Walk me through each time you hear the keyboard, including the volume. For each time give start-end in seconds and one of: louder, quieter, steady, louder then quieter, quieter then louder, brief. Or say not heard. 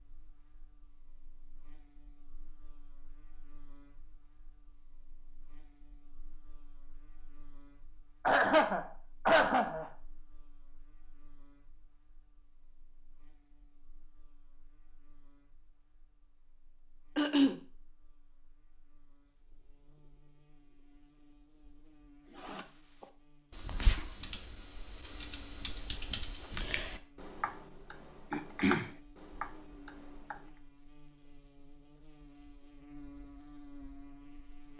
22.4-30.5 quieter then louder.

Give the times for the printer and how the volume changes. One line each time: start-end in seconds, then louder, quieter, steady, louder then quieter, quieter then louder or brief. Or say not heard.
not heard.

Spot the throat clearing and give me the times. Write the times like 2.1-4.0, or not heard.
8.2-9.9, 17.1-17.6, 28.3-28.9.